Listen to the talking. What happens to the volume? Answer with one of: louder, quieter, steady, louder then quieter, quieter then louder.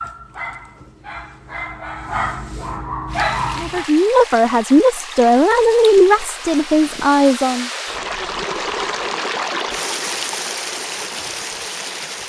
steady.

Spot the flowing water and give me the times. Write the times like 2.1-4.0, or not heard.
3.0-12.2.